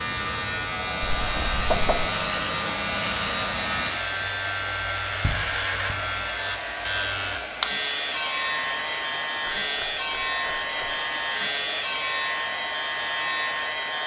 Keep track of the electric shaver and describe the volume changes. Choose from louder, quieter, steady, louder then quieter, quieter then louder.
steady.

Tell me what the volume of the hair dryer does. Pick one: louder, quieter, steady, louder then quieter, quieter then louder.
steady.